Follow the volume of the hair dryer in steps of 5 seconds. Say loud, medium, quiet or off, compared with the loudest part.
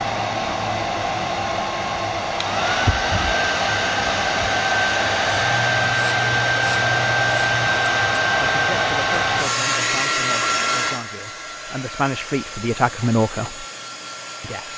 loud, loud, medium.